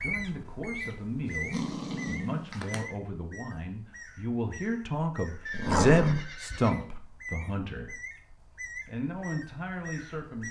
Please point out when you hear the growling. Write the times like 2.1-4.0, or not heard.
0.8-2.9, 5.5-6.3.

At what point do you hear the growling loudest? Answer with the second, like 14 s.
6 s.